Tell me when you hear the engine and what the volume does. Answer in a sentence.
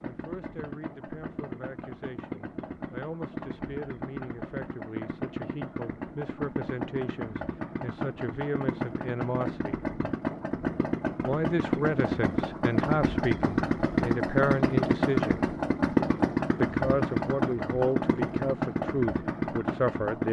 The engine can be heard from 0.0 to 20.2 s, getting louder.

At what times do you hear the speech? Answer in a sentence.
You can hear the speech from 0.0 to 9.8 s, from 11.2 to 15.4 s and from 16.6 to 20.2 s.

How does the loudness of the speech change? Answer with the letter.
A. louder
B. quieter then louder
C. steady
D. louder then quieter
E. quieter
A.